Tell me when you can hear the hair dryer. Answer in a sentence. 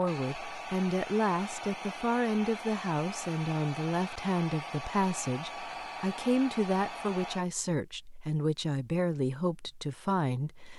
You can hear the hair dryer from 0.0 to 7.5 s.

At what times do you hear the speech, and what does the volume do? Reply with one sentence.
You can hear the speech from 0.0 to 10.7 s, at a steady volume.